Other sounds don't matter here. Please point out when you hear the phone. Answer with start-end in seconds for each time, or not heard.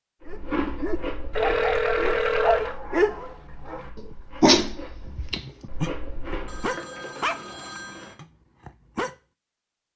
1.3-2.8, 6.5-8.2.